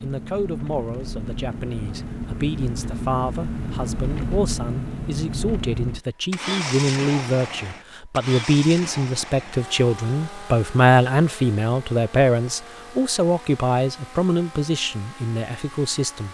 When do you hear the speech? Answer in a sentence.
You can hear the speech from 0.0 to 16.3 s.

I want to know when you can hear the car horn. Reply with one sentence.
You can't hear the car horn here.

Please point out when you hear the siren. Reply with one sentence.
You can't hear the siren here.